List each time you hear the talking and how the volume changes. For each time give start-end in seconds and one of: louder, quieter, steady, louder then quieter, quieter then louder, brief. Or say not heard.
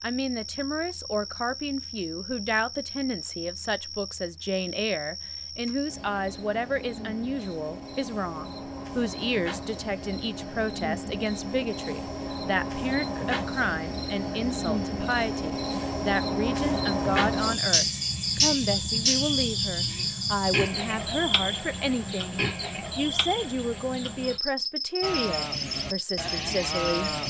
0.0-27.1 steady.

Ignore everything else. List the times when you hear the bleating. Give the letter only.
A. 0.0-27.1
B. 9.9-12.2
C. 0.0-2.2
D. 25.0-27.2
D.